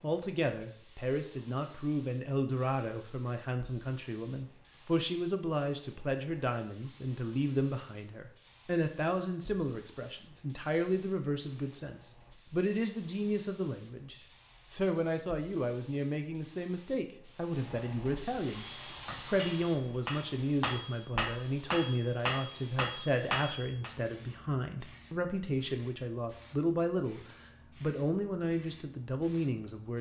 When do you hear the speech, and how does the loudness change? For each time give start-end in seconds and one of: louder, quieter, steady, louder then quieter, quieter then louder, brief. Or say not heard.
0.0-18.6 steady
19.2-29.9 steady.